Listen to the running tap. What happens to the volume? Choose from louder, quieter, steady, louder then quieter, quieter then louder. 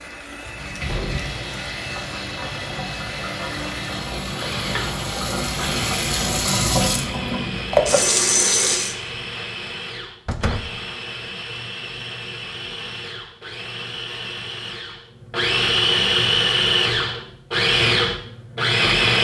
louder.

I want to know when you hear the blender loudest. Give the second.
16 s.